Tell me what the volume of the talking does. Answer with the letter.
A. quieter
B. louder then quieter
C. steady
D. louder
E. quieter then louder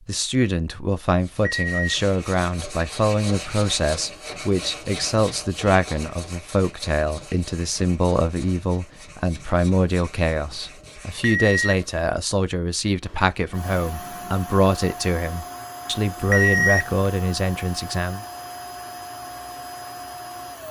C.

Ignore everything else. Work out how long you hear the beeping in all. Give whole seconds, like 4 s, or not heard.
2 s.